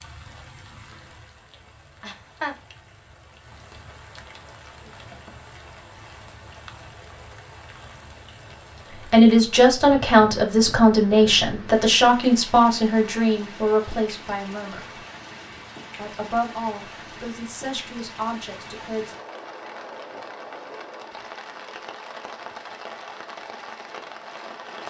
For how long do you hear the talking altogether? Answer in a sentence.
The talking can be heard for 9 seconds in total.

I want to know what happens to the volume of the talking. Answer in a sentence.
The loudness of the talking goes down.